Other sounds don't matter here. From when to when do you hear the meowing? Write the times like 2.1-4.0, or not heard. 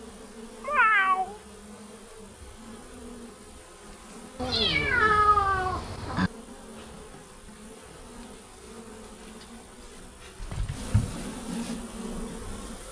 0.6-1.4, 4.3-6.3, 10.4-11.2.